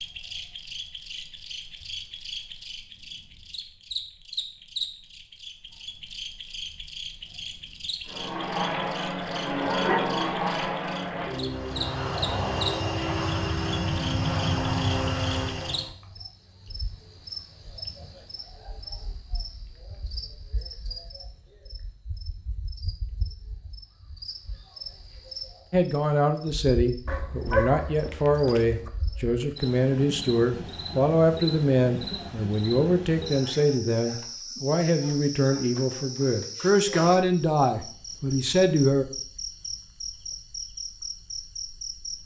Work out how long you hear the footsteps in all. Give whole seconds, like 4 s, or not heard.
not heard.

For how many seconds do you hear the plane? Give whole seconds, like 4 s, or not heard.
8 s.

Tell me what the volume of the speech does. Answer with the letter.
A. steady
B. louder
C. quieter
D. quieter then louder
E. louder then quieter
A.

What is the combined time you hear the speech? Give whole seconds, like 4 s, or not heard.
13 s.